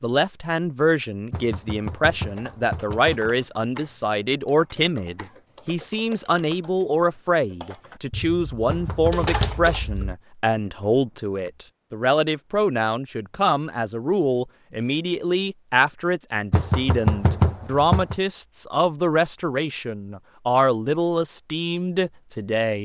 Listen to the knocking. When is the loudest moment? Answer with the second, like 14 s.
17 s.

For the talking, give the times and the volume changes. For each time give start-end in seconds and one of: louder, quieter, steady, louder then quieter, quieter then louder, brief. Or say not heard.
0.0-22.8 steady.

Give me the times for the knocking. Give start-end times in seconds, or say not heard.
1.3-3.3, 8.7-9.6, 16.5-18.1.